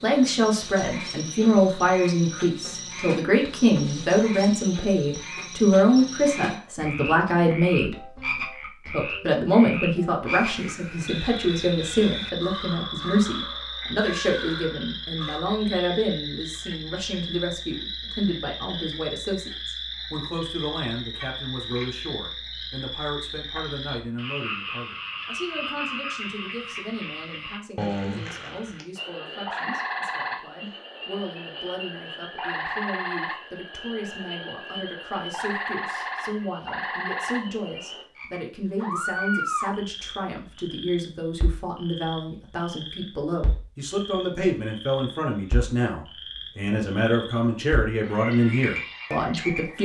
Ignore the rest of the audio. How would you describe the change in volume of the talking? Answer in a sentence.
The volume of the talking goes down, then up.